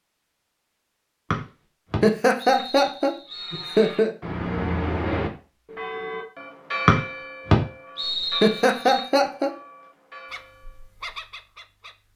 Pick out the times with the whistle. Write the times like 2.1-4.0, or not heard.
1.3-4.0, 6.8-9.1.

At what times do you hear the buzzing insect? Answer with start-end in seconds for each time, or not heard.
not heard.